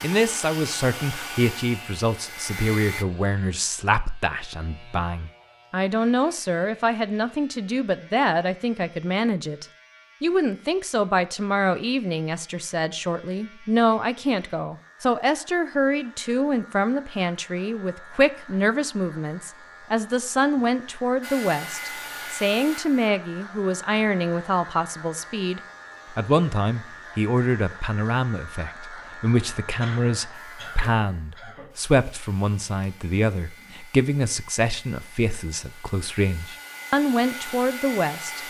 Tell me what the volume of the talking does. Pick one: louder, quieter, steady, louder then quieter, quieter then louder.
steady.